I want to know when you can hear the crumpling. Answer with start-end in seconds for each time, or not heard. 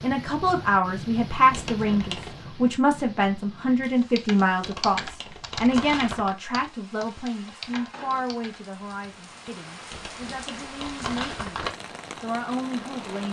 1.5-2.4, 4.6-6.3, 9.9-11.8.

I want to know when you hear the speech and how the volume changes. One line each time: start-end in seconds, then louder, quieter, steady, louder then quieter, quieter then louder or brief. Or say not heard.
0.0-13.2 quieter.